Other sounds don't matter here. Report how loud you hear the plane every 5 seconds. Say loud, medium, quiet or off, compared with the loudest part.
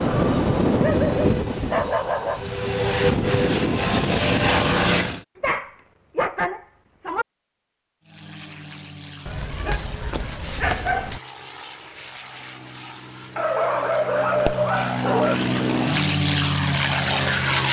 loud, quiet, quiet, loud.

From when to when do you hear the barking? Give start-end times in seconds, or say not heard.
0.8-2.5, 5.4-7.2, 9.2-11.2, 13.3-15.3.